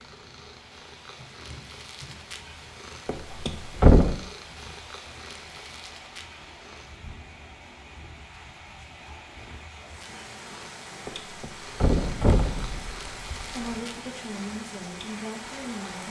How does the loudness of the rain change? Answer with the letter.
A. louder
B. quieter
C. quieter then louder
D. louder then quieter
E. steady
A.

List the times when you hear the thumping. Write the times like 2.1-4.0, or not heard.
3.0-4.2, 11.1-13.8.